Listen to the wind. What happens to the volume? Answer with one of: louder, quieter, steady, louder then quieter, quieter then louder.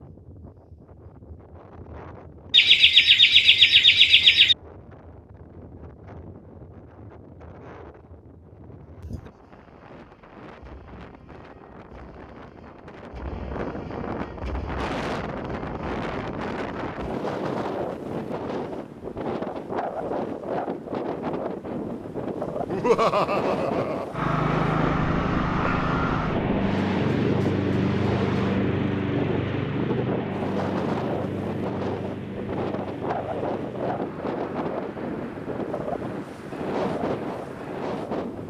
louder.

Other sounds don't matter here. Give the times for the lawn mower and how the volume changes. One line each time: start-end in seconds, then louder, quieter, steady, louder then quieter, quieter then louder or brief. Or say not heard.
24.1-38.4 quieter.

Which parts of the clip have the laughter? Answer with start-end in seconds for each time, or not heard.
2.5-4.5, 22.6-24.1.